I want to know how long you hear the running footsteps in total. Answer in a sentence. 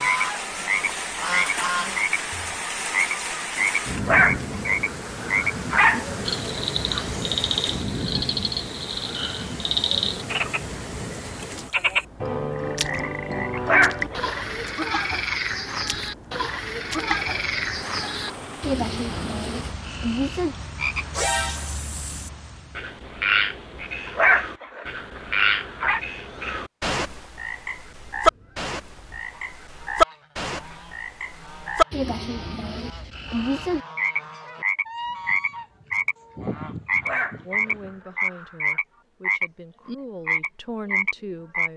The running footsteps can't be heard in this clip.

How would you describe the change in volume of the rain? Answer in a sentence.
The loudness of the rain goes down.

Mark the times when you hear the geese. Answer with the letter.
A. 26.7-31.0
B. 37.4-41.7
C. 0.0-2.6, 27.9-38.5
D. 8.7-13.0
C.